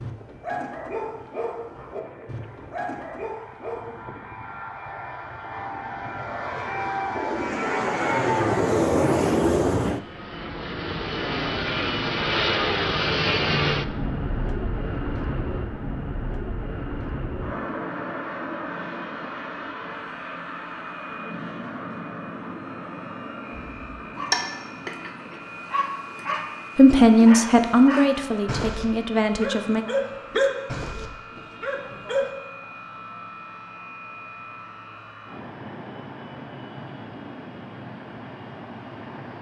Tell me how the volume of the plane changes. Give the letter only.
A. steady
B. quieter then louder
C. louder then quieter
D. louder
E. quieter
C.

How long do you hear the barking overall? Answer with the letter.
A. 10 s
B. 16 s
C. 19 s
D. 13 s
D.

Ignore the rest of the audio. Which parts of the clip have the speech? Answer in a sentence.
You can hear the speech from 26.8 to 29.9 s.